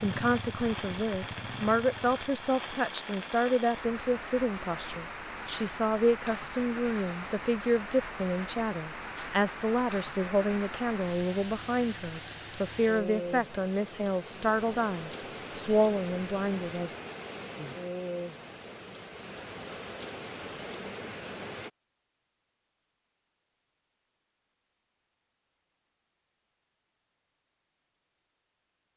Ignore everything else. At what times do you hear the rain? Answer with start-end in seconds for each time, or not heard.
0.0-21.7.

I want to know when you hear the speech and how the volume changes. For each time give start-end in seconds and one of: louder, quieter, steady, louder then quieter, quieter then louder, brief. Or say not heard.
0.0-16.9 steady.